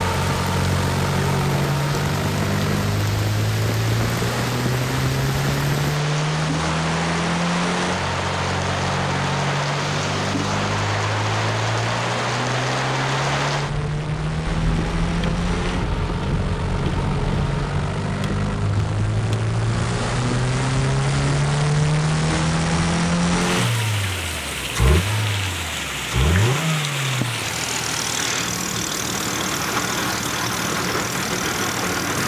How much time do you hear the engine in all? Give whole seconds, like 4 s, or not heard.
32 s.